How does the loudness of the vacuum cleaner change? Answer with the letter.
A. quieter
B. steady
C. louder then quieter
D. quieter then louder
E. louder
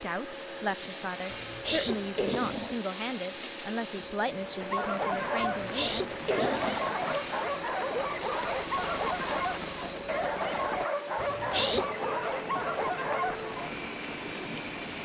B.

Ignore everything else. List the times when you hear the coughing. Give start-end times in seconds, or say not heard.
1.3-2.8, 5.5-6.9, 11.2-11.8.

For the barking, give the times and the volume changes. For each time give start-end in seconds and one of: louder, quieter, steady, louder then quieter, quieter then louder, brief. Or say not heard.
4.6-13.6 steady.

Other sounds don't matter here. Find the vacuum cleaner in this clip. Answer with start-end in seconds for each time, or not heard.
0.0-14.9.